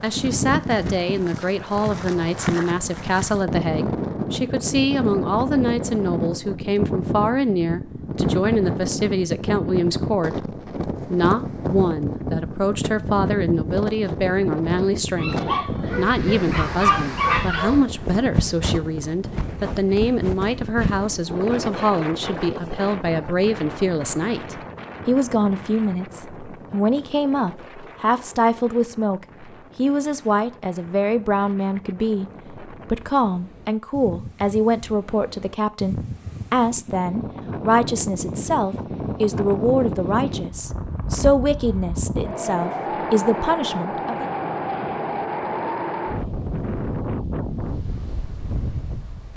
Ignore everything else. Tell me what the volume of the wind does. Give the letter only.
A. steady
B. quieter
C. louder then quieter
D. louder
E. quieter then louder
E.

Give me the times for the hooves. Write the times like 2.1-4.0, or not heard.
not heard.